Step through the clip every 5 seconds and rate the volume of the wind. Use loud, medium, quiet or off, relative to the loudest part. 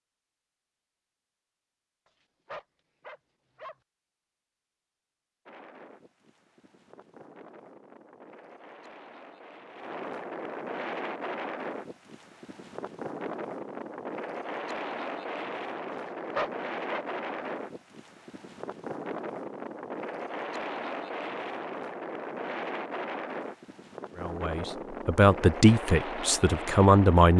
off, quiet, loud, loud, loud, loud.